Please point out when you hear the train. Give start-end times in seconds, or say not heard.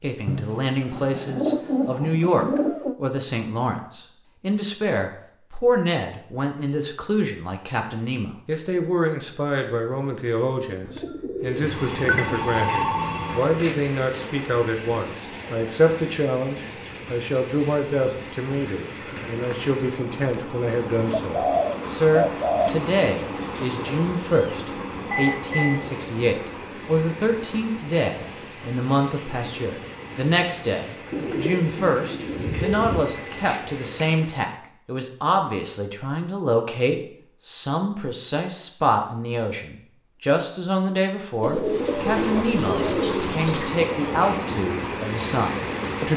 11.4-34.5, 41.6-46.1.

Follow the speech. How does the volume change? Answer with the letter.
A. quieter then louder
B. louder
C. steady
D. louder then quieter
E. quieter
C.